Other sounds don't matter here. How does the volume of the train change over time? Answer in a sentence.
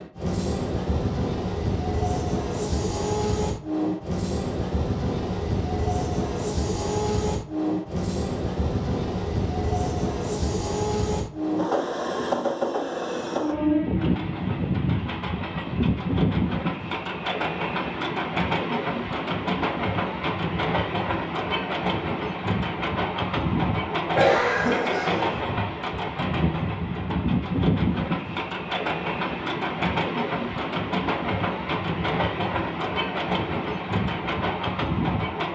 The loudness of the train stays about the same.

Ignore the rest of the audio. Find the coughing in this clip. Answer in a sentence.
The coughing can be heard from 24.1 to 25.4 s.